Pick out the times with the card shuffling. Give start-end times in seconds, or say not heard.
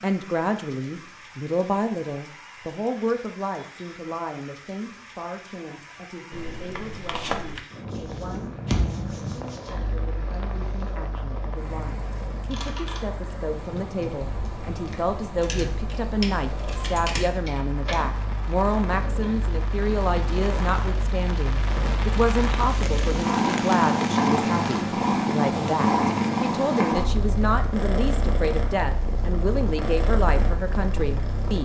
6.3-7.7.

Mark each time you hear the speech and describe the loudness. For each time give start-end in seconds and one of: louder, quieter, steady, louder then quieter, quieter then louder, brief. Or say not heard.
0.0-31.5 quieter then louder.